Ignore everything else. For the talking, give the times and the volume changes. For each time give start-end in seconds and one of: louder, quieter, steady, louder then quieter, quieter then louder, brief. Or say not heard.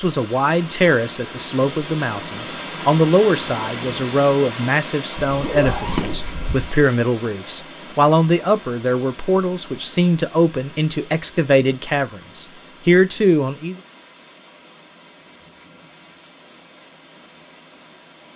0.0-13.8 steady.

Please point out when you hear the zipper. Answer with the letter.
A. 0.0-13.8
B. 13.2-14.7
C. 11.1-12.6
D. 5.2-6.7
D.